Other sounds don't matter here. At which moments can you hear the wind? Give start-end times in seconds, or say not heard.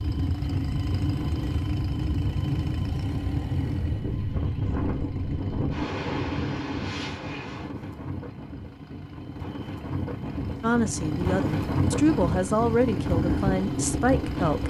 0.0-14.6.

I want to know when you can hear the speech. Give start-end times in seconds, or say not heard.
10.6-14.6.